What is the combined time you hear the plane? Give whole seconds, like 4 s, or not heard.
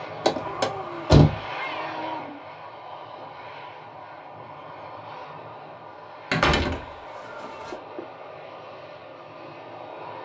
10 s.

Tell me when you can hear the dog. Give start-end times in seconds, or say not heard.
not heard.